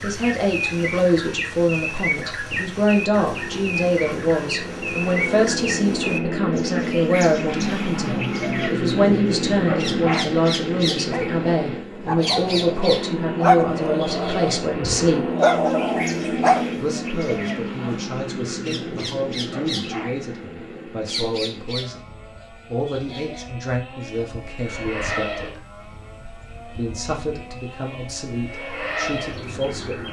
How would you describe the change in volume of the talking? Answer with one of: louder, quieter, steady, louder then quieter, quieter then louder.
quieter.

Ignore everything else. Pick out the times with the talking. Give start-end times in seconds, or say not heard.
0.0-15.2, 16.8-25.6, 26.8-30.0.